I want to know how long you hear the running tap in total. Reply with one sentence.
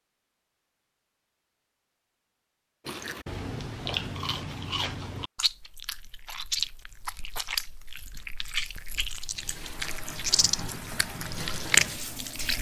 You can hear the running tap for 3 seconds altogether.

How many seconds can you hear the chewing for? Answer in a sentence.
You can hear the chewing for 10 seconds altogether.